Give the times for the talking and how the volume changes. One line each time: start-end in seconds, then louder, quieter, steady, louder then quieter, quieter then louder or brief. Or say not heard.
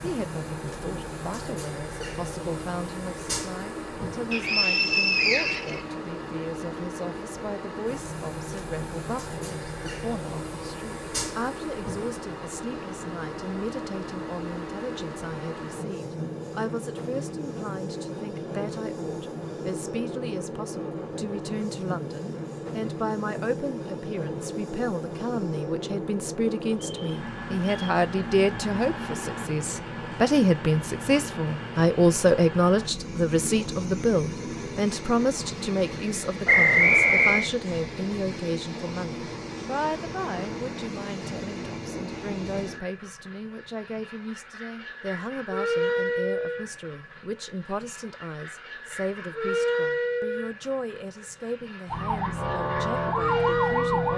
0.0-54.1 louder then quieter.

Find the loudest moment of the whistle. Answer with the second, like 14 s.
37 s.